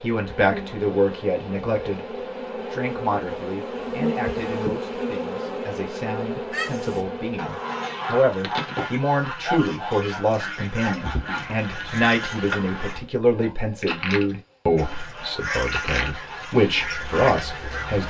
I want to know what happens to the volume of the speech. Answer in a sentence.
The loudness of the speech goes down, then up.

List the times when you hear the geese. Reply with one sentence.
You can hear the geese from 6.5 to 13.0 s and from 14.8 to 18.0 s.